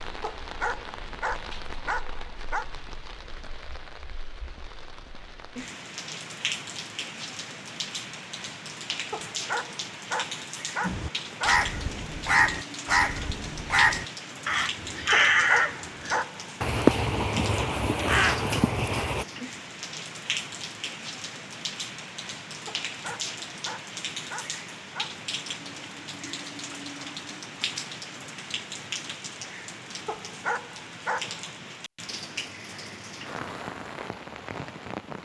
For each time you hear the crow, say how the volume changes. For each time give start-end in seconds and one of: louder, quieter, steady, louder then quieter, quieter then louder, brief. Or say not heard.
10.8-19.2 steady.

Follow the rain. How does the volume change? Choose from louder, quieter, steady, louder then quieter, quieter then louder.
steady.